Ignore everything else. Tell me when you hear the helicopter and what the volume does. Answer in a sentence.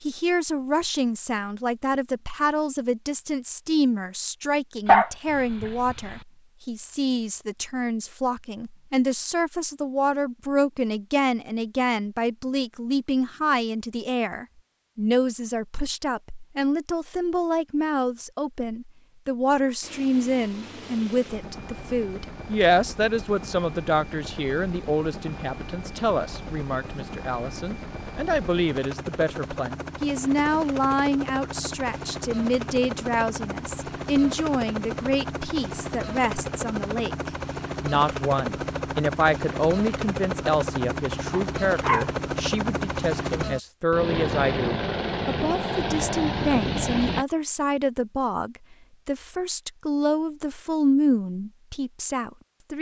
The helicopter can be heard from 19.8 to 47.2 s, getting louder.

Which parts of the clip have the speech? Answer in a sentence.
You can hear the speech from 0.0 to 52.7 s.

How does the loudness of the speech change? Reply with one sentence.
The volume of the speech stays about the same.